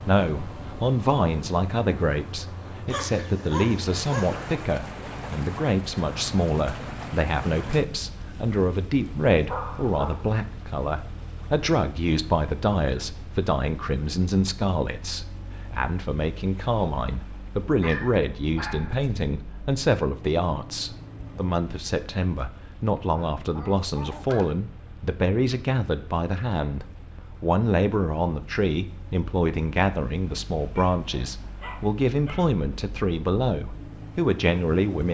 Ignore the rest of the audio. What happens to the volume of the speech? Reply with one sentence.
The loudness of the speech stays about the same.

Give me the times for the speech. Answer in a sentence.
The speech can be heard from 0.0 to 35.0 s.